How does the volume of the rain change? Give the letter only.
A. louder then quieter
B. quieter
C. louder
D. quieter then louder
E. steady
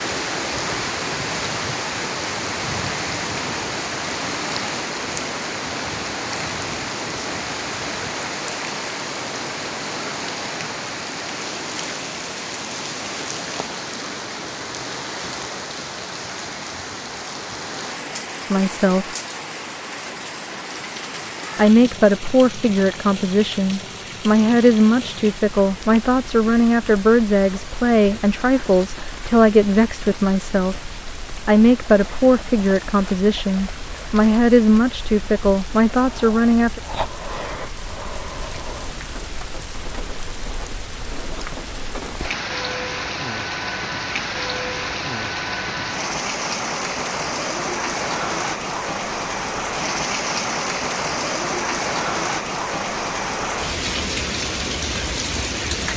D.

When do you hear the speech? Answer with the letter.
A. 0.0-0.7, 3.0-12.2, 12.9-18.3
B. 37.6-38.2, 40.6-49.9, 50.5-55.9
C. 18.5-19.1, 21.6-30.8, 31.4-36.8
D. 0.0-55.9
C.